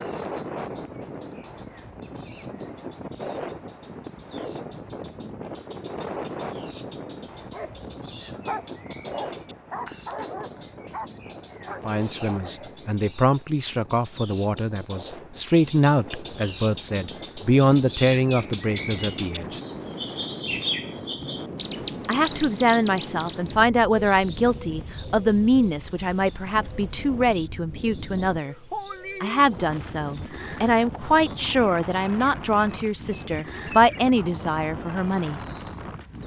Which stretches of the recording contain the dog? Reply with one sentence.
The dog can be heard from 7.3 to 12.7 s.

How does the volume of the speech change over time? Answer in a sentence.
The volume of the speech stays about the same.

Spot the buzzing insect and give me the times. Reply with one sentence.
The buzzing insect can't be heard in this clip.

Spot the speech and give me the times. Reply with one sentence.
You can hear the speech from 11.8 to 19.6 s, from 22.1 to 28.6 s and from 29.2 to 35.4 s.